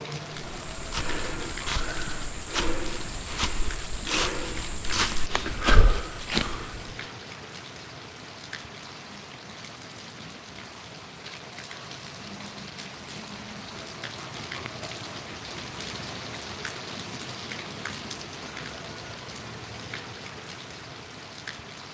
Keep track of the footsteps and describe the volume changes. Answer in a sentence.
The volume of the footsteps goes up.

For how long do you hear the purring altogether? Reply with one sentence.
The purring can't be heard in this clip.